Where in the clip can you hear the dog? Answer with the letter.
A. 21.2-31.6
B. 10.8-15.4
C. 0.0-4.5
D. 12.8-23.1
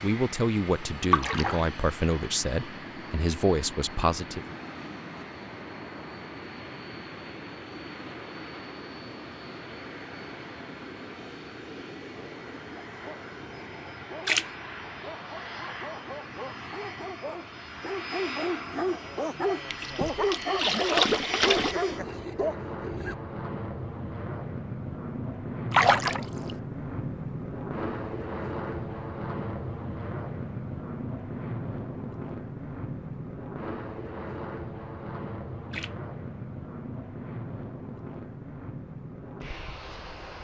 D.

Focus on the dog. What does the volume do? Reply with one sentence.
The loudness of the dog goes up.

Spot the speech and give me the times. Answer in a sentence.
The speech can be heard from 0.0 to 4.5 s.